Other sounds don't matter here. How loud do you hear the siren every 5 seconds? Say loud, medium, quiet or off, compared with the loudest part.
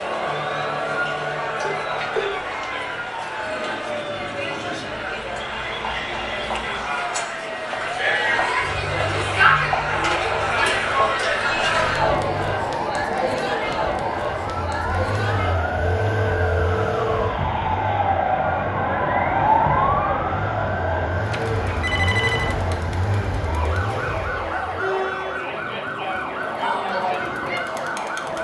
medium, medium, medium, loud, medium, medium.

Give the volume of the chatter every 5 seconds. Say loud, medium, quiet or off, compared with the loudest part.
medium, loud, loud, medium, medium, medium.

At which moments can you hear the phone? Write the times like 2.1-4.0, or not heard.
1.6-2.4, 15.8-17.3, 21.3-22.6.